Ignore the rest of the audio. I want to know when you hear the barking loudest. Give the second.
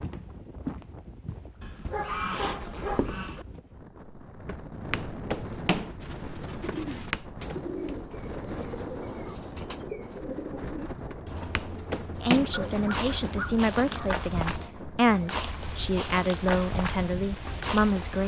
2 s.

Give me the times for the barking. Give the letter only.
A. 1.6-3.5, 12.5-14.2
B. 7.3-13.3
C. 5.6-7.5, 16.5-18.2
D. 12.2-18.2
A.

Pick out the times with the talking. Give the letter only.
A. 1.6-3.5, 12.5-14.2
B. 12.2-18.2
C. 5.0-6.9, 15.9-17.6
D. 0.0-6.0
B.